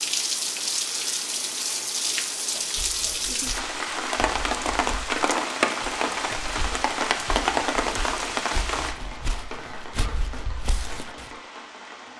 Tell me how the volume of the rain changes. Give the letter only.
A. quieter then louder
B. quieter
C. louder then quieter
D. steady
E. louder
B.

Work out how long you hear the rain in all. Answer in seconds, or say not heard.
12 s.